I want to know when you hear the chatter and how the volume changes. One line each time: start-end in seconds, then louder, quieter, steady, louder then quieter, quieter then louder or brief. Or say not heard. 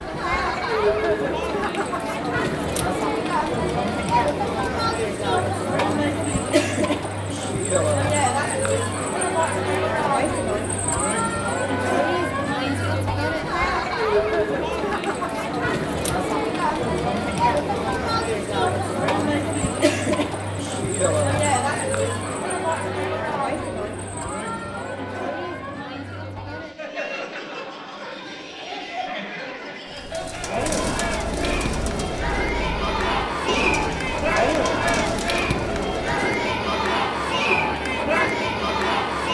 0.0-39.2 quieter then louder.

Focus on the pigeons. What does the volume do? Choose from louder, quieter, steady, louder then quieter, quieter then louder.
steady.